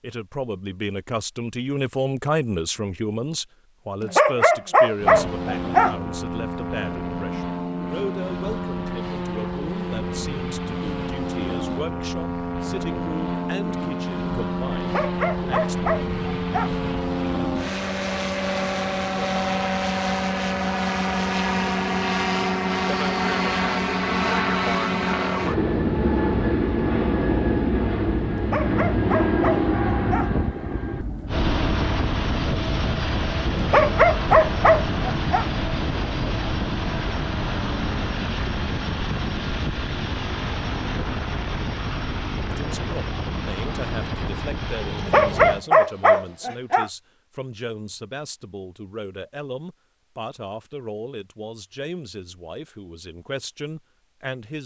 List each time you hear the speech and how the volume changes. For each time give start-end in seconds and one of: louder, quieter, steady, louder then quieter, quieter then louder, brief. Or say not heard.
0.0-15.8 quieter
42.5-54.6 steady.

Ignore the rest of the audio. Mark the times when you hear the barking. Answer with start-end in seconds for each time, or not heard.
4.0-6.0, 14.8-16.7, 28.4-30.3, 33.6-35.5, 45.0-46.9.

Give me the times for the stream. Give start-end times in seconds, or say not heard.
not heard.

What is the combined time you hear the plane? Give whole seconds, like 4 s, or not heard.
41 s.